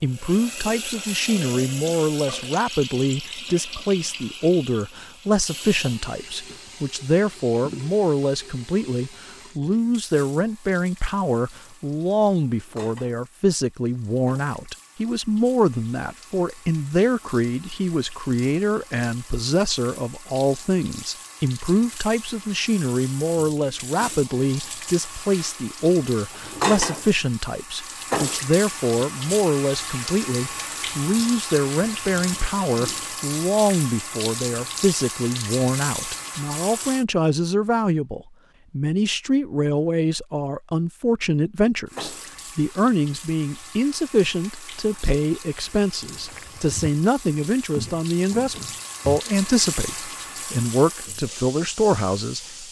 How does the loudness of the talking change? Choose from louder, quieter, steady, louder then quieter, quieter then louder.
steady.